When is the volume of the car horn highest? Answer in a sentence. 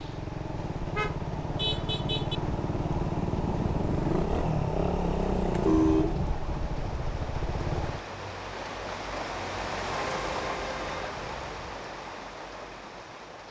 The volume of the car horn peaks at 6 seconds.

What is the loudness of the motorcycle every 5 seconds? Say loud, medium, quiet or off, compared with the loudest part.
loud, loud, off.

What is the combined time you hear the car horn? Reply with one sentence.
You can hear the car horn for 4 seconds altogether.